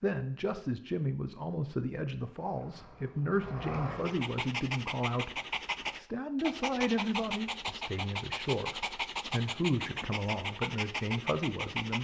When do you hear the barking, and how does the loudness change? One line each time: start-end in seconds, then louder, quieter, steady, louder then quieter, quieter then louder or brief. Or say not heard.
3.9-11.9 steady.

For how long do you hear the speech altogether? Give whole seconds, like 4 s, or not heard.
11 s.